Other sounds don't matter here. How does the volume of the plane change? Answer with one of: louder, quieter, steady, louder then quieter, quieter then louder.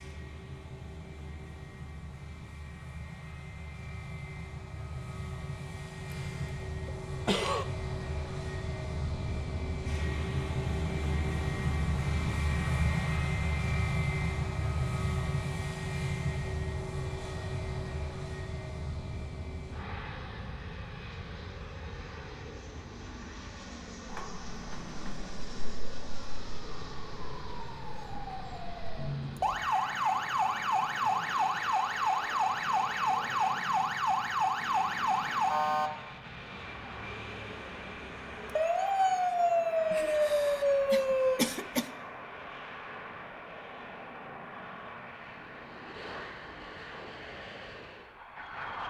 louder then quieter.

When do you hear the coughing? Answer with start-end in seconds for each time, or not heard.
6.1-7.7, 39.9-41.9.